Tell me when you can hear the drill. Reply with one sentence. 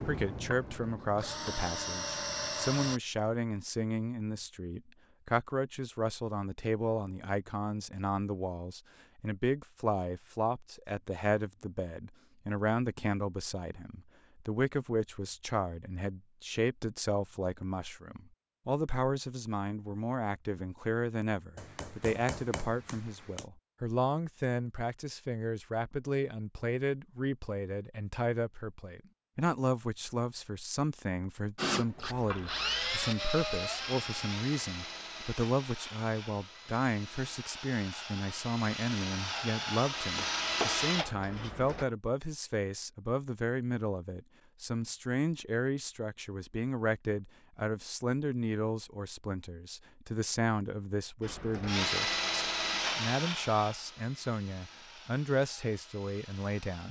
You can hear the drill from 0.0 to 3.0 s, from 31.6 to 41.9 s and from 51.2 to 56.8 s.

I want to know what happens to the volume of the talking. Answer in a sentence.
The volume of the talking stays about the same.